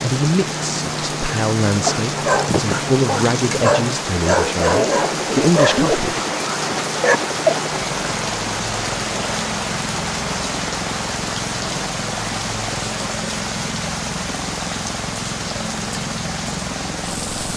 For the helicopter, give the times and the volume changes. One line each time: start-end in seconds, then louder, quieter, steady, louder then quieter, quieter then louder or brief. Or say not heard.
0.0-17.5 steady.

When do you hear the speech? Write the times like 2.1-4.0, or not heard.
0.0-6.2.